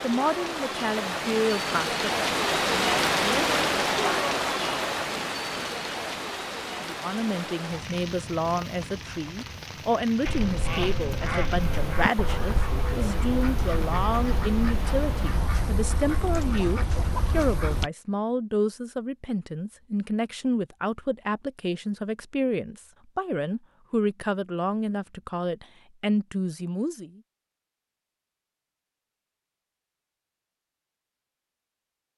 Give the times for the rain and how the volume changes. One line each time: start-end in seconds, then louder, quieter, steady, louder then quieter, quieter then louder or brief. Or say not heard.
0.0-17.9 quieter.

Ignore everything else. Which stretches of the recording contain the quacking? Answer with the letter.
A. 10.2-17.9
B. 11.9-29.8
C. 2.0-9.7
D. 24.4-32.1
A.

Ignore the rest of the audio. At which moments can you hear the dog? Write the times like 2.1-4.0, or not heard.
not heard.